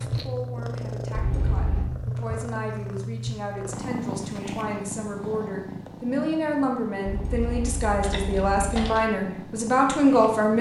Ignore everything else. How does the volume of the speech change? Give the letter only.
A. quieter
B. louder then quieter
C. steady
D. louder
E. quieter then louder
D.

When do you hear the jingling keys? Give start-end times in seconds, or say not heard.
1.1-1.9, 7.0-9.0.